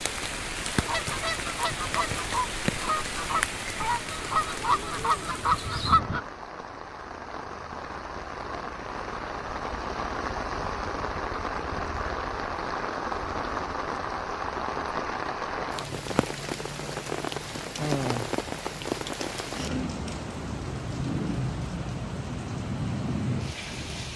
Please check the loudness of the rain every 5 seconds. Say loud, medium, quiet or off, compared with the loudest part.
loud, medium, loud, loud, loud.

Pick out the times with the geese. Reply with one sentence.
You can hear the geese from 0.8 to 6.2 s.